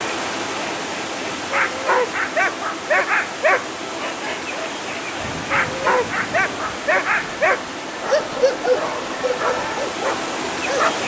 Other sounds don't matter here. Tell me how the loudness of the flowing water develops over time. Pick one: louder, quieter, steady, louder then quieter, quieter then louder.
steady.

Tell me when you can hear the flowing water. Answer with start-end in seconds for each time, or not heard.
0.0-11.0.